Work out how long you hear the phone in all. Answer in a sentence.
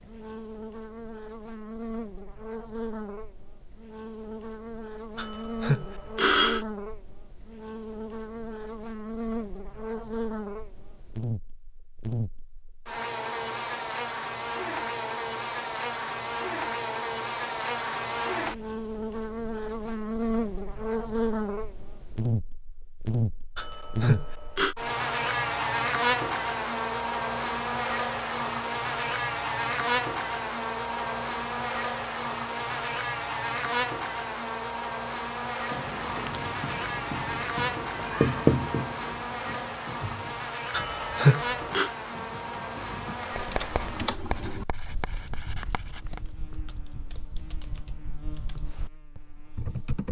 The phone can be heard for 4 seconds in total.